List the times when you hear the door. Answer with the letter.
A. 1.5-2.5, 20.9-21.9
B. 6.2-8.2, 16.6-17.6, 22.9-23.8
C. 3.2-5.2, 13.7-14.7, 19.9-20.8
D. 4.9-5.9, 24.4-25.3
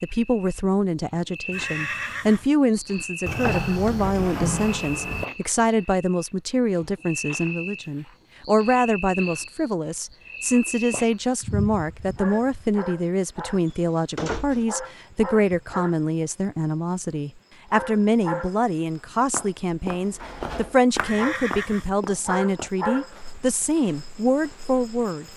C.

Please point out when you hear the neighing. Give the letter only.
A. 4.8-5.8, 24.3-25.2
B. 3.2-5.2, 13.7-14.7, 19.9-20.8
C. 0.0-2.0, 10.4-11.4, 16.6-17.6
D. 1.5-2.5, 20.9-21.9
D.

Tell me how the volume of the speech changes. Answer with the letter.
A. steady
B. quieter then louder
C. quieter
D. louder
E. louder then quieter
A.